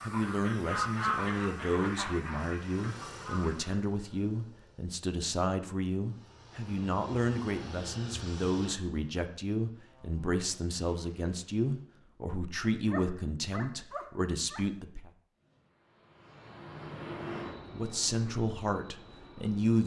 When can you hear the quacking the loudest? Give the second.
1 s.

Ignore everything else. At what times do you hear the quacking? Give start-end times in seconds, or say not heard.
0.0-3.8.